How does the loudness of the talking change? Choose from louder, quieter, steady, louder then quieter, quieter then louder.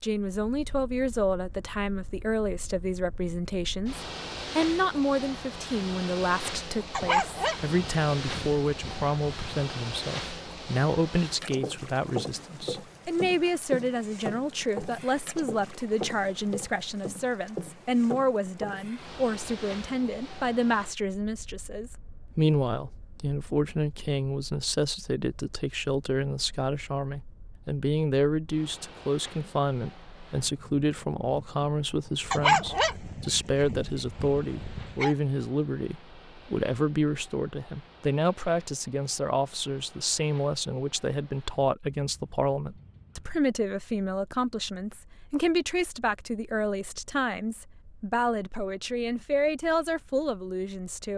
steady.